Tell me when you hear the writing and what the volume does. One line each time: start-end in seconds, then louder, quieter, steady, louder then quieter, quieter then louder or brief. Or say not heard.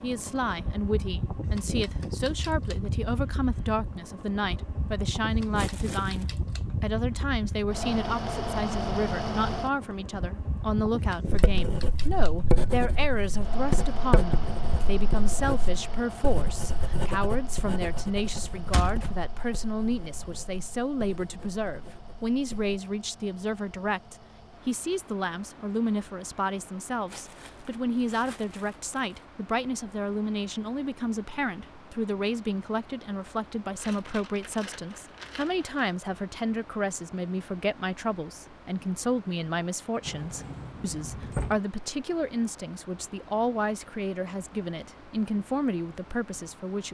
11.2-22.8 quieter.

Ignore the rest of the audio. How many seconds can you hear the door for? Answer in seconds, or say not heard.
2 s.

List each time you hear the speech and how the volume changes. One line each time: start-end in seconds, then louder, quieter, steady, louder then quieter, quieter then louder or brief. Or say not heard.
0.0-46.8 steady.